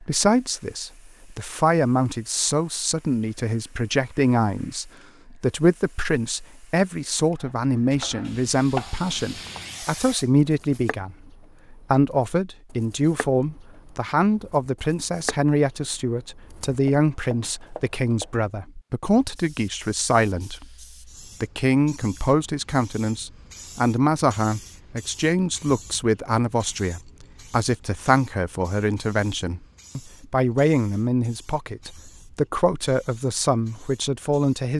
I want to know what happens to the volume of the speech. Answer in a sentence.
The loudness of the speech stays about the same.